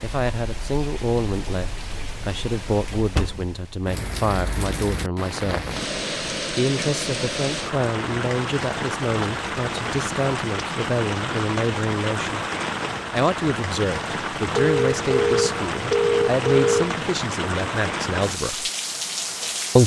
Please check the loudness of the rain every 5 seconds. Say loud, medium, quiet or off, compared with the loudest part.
medium, loud, loud, loud.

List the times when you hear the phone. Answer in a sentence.
The phone can be heard from 14.5 to 16.9 s.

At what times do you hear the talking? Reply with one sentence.
You can hear the talking from 0.0 to 5.7 s, from 6.5 to 12.4 s and from 13.1 to 18.7 s.